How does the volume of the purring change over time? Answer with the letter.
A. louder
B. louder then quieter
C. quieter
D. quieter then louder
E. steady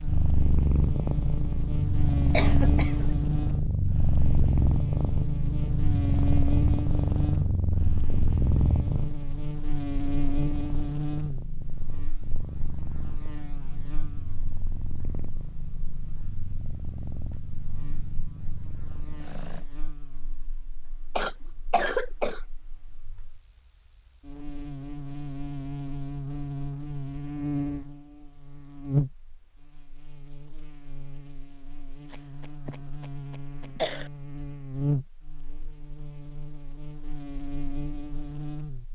C.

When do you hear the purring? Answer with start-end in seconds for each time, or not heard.
0.0-19.6.